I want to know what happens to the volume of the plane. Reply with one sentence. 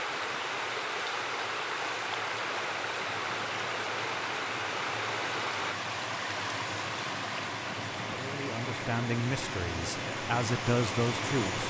The volume of the plane goes up.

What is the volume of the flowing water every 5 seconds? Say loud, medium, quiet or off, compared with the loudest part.
loud, loud, medium.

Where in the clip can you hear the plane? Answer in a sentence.
You can hear the plane from 0.0 to 11.6 s.